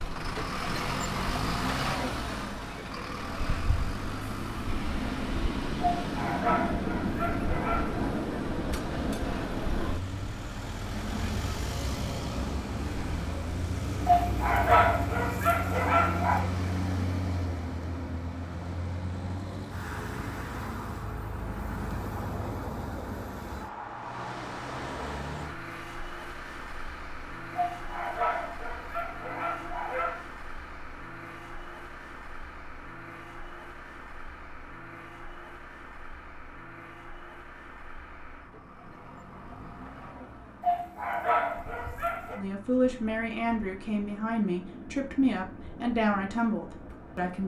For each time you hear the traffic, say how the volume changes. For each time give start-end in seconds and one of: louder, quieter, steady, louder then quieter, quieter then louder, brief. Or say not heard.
0.0-47.4 quieter.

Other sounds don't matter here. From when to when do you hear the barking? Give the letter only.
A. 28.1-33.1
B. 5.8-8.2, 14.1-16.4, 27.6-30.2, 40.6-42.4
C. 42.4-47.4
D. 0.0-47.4
B.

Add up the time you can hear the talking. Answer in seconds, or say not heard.
5 s.